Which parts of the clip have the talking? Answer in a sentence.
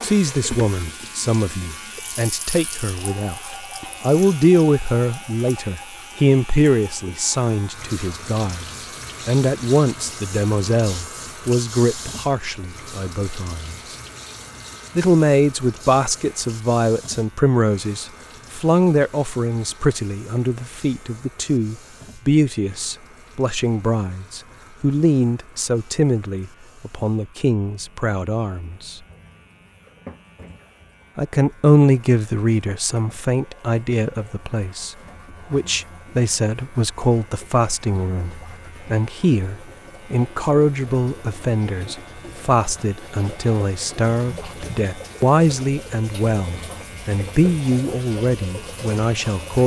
The talking can be heard from 0.0 to 13.9 s, from 14.9 to 29.0 s and from 31.1 to 49.6 s.